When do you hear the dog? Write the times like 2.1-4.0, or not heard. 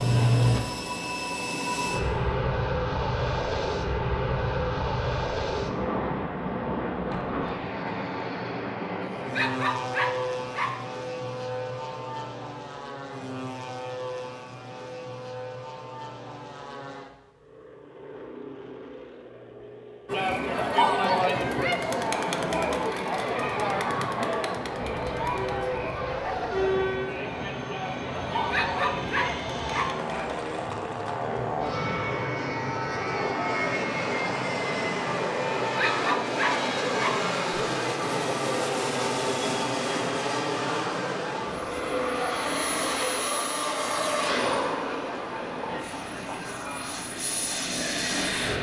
9.0-10.8, 28.4-30.0, 35.6-37.2.